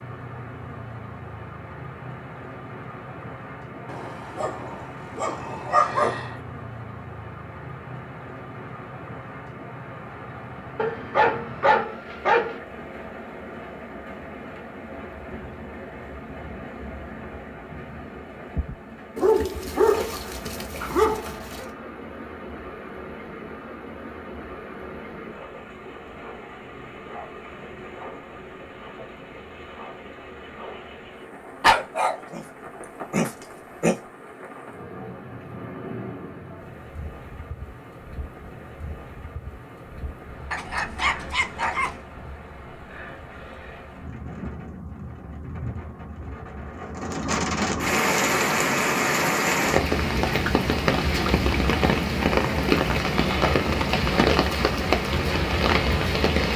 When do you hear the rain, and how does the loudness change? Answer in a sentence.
You can hear the rain from 0.0 to 56.5 s, getting louder.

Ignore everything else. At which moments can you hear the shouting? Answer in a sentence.
The shouting can't be heard in this clip.